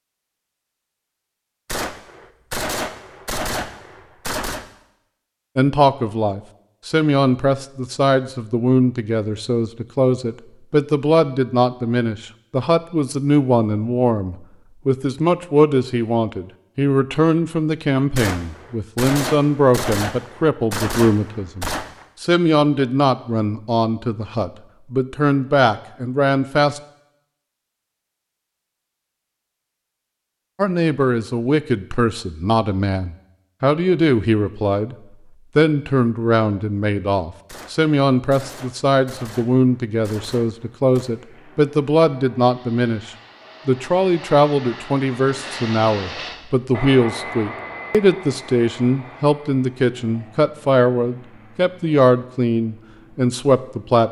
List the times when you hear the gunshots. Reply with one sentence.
You can hear the gunshots from 1.6 to 4.7 s, from 18.1 to 22.1 s and from 37.5 to 41.1 s.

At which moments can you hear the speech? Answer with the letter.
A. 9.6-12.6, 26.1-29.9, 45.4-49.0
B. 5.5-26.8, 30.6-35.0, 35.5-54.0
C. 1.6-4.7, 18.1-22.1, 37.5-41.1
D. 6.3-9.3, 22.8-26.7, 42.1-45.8
B.